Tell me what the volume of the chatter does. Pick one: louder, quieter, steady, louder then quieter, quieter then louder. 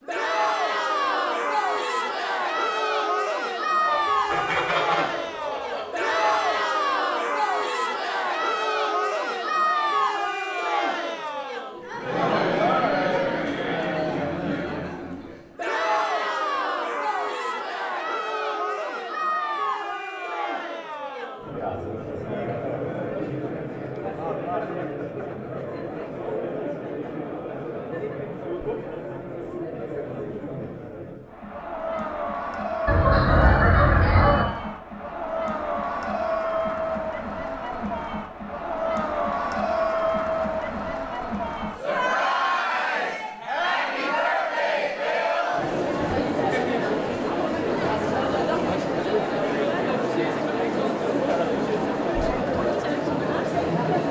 quieter then louder.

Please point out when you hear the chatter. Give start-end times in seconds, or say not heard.
0.1-54.0.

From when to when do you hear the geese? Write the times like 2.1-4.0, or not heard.
3.9-6.3, 32.9-34.5.